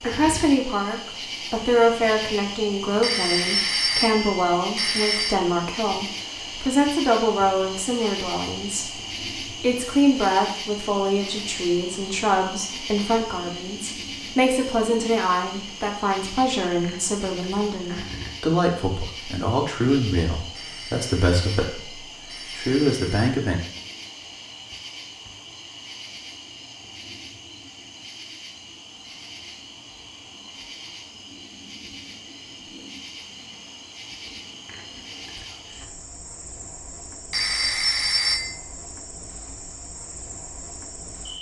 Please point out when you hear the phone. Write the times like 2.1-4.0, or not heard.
3.0-5.4, 20.6-23.3, 37.3-38.5.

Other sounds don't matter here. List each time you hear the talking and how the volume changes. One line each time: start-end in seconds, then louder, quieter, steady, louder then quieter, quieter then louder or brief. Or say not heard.
0.0-23.6 steady.